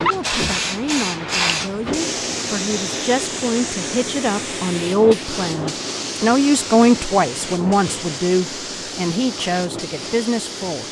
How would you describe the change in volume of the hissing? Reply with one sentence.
The loudness of the hissing goes down.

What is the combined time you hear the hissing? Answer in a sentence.
You can hear the hissing for 11 seconds altogether.